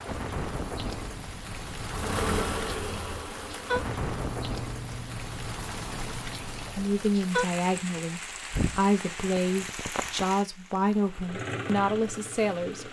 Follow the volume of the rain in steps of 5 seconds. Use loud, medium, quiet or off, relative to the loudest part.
loud, loud, medium.